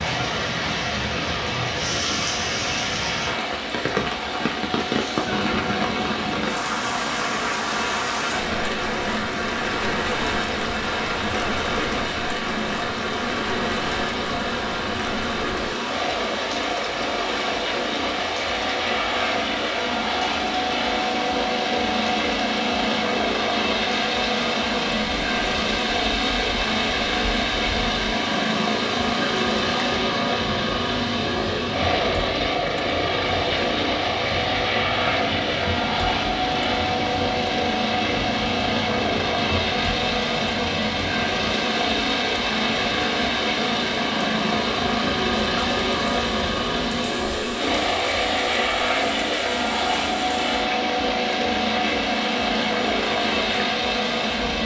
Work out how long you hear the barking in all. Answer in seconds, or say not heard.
not heard.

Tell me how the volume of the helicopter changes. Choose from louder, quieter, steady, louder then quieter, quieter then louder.
louder.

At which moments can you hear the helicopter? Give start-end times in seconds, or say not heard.
0.0-54.6.